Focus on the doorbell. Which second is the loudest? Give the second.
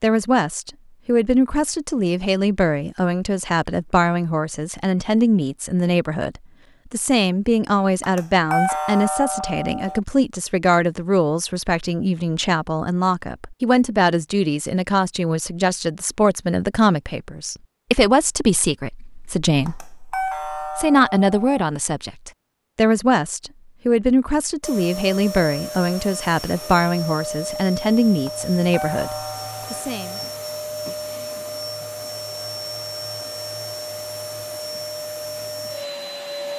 9 s.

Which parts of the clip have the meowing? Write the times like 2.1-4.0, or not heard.
not heard.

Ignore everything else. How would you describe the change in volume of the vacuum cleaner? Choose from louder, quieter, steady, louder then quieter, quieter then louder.
steady.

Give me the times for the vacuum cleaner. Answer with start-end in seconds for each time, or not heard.
24.6-36.5.